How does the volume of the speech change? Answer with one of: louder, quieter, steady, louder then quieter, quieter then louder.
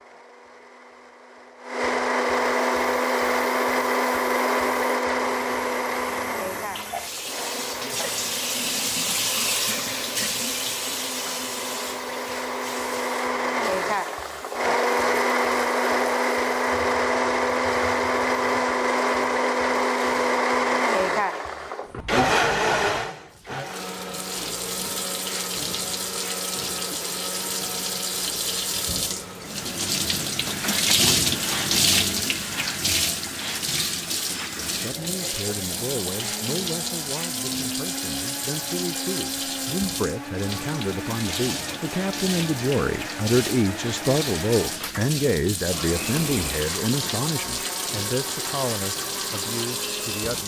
louder then quieter.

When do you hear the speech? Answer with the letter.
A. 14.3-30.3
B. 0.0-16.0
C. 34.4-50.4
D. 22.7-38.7
C.